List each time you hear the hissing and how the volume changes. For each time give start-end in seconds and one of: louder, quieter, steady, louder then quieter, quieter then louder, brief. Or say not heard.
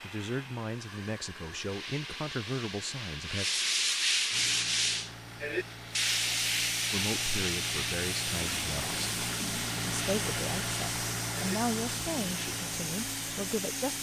0.0-13.9 louder.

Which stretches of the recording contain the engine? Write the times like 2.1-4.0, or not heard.
4.3-13.9.